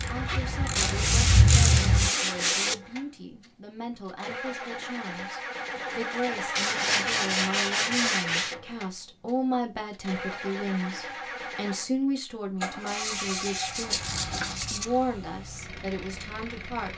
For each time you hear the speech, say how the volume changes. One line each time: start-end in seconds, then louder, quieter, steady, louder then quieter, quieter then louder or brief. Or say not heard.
0.1-16.9 louder.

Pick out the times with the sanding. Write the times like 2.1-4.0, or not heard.
0.8-2.8, 6.5-8.6, 12.8-14.8.